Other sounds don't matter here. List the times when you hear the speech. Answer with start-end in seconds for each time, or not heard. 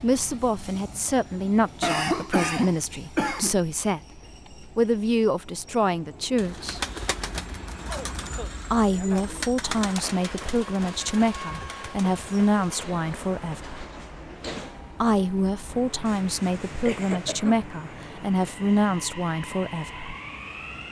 0.0-6.8, 8.7-13.8, 15.0-20.1.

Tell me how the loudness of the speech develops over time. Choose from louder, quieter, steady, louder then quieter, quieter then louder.
steady.